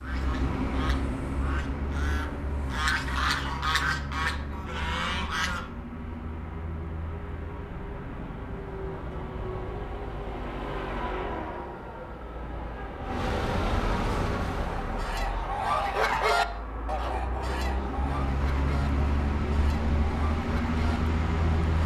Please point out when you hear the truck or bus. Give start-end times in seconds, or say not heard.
0.0-21.8.